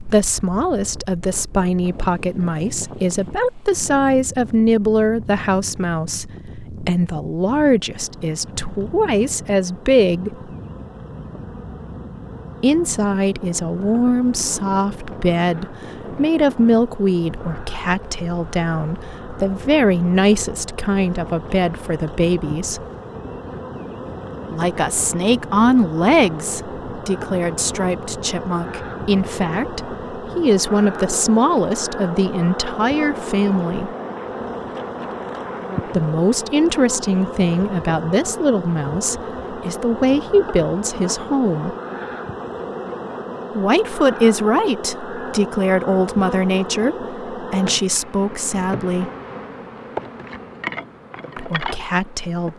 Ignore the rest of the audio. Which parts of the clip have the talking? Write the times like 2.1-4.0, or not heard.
0.1-10.3, 12.6-22.8, 24.5-33.9, 35.9-41.8, 43.5-49.1, 51.4-52.5.